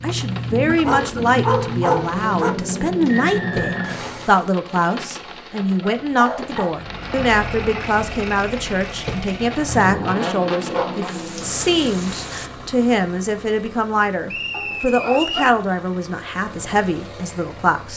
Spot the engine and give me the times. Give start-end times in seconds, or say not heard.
0.0-4.5, 6.7-17.9.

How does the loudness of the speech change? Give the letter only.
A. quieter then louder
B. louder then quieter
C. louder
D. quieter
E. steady
E.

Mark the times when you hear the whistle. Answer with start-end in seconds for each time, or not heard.
3.0-4.2, 14.2-15.6.